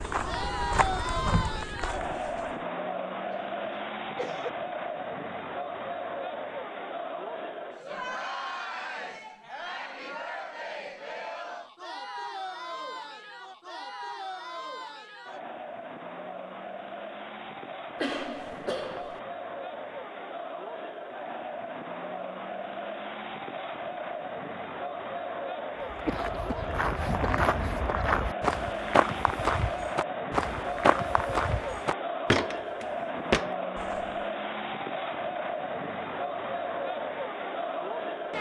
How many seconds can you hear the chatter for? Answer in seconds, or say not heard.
38 s.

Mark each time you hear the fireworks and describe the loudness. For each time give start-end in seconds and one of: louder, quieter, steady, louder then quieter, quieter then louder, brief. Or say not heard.
not heard.